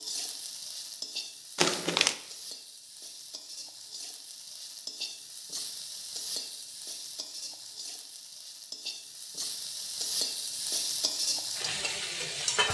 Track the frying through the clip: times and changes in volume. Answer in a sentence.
You can hear the frying from 0.0 to 12.6 s, getting louder.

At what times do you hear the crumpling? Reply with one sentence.
You can hear the crumpling from 1.6 to 2.1 s.